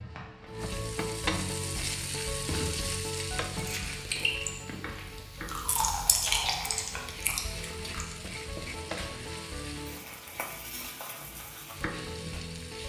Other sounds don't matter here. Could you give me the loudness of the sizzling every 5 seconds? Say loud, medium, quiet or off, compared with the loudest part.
loud, medium, medium.